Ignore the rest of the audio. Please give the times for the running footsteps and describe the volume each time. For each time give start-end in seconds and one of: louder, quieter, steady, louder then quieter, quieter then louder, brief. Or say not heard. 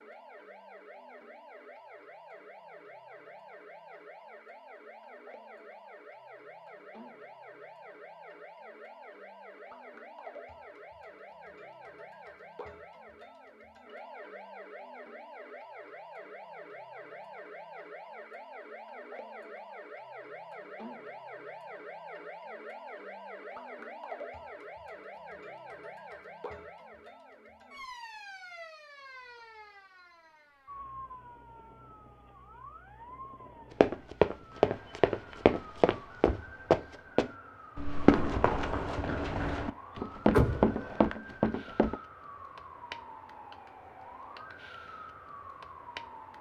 33.8-42.0 quieter then louder.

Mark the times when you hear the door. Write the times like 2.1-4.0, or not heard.
40.3-41.0.